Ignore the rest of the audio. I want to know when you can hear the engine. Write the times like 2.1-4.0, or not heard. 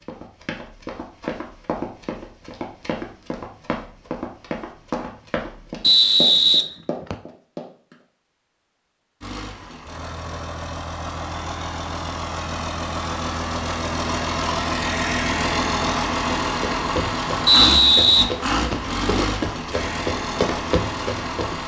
9.2-21.6.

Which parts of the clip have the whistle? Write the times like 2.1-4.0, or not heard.
5.8-7.2, 17.4-18.9.